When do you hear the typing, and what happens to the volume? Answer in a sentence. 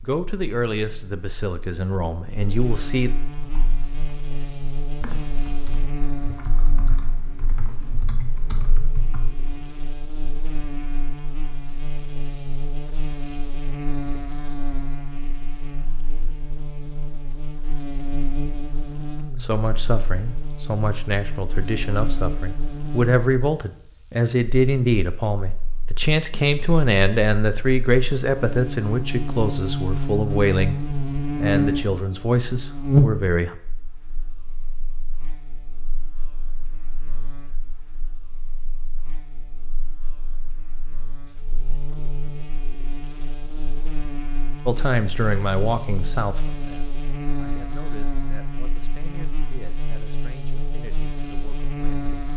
The typing can be heard from 3.4 to 9.7 s, getting louder.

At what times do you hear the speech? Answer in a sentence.
The speech can be heard from 0.0 to 3.1 s, from 19.4 to 30.8 s, from 31.4 to 33.5 s and from 44.6 to 52.0 s.